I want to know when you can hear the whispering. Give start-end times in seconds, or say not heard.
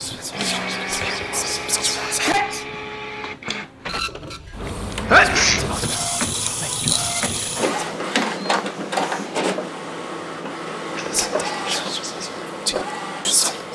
0.0-2.4, 5.0-7.7, 10.9-13.6.